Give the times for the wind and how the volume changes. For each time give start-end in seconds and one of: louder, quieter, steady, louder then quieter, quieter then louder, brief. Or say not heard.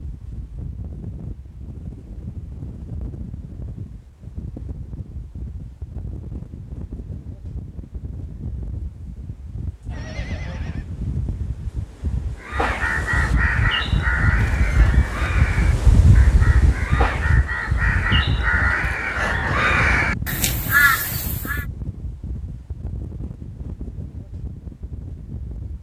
0.0-25.7 louder then quieter.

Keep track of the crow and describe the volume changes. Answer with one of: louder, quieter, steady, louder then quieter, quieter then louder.
quieter then louder.